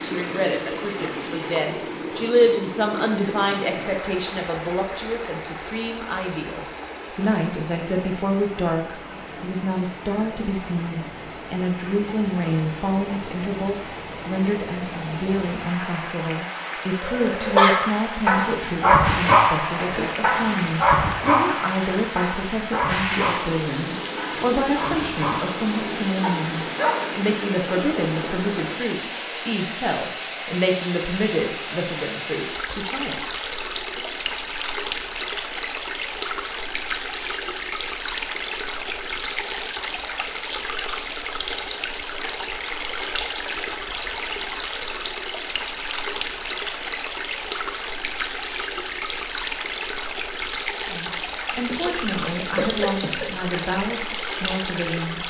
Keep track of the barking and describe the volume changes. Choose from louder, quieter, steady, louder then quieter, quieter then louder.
quieter.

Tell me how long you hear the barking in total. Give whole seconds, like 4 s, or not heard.
10 s.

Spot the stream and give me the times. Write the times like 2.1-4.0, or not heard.
0.0-55.2.